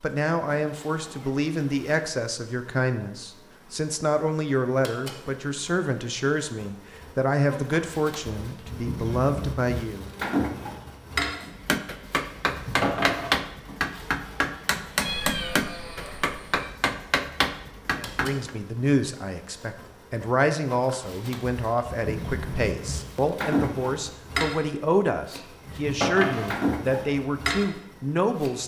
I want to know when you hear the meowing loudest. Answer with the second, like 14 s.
15 s.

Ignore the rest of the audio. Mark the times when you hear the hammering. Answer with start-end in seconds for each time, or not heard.
11.4-18.5.